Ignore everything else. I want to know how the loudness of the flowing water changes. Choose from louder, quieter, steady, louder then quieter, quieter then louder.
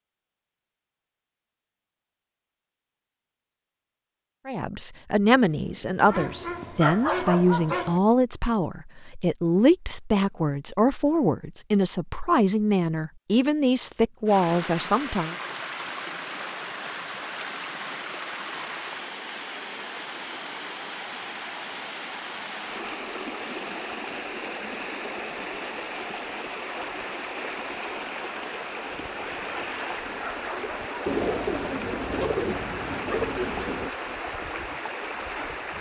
steady.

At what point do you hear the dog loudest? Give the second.
7 s.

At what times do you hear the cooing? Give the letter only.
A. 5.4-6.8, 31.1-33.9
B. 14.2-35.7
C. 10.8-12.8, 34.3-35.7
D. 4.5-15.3
A.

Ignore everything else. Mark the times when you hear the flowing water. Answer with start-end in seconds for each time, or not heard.
14.2-35.7.